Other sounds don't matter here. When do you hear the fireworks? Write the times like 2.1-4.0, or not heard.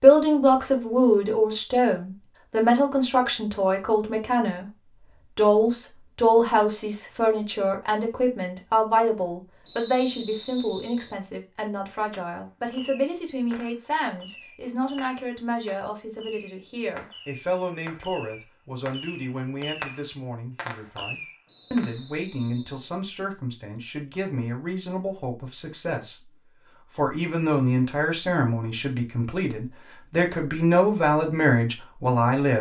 12.1-22.0.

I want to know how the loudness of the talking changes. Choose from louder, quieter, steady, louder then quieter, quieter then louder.
quieter then louder.